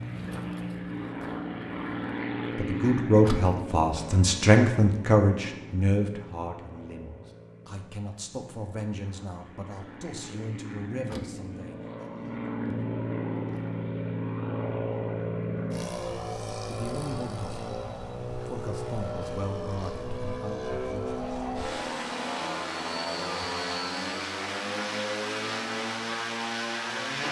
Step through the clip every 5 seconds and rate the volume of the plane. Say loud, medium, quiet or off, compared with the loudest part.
loud, quiet, loud, loud, loud, loud.